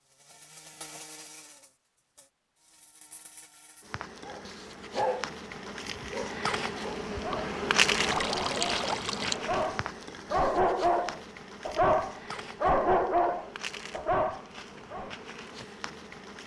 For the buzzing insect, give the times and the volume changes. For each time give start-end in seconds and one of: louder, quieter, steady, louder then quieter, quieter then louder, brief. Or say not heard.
0.1-16.4 louder then quieter.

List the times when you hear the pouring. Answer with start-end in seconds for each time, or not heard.
8.0-9.4.